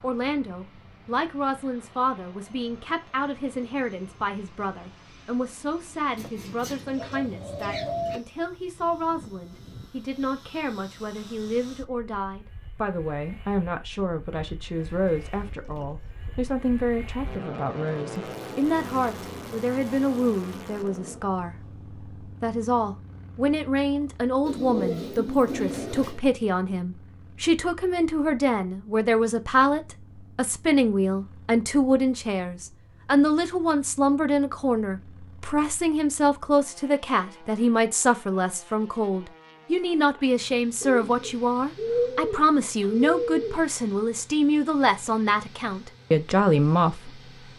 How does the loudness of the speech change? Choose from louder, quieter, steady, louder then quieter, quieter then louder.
louder.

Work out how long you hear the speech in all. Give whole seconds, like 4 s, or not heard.
47 s.